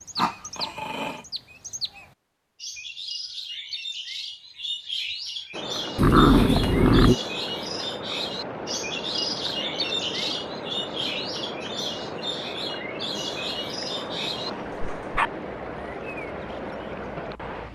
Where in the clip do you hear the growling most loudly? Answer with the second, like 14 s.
6 s.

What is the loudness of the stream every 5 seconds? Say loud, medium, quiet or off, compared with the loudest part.
off, loud, loud, loud.